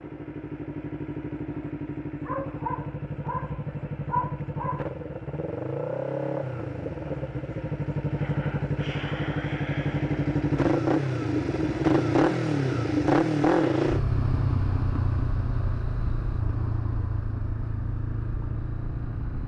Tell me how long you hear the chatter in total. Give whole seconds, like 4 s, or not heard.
not heard.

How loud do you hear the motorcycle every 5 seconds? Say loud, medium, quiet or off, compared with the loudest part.
medium, medium, loud, medium.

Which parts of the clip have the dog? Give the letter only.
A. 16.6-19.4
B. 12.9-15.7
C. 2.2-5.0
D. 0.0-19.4
C.